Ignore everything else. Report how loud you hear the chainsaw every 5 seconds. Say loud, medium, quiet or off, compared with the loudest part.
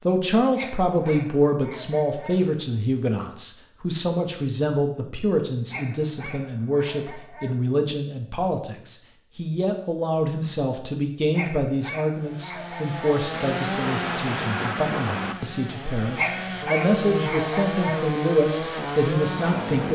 off, off, loud, loud.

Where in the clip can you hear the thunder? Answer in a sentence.
You can hear the thunder from 13.3 to 15.3 s.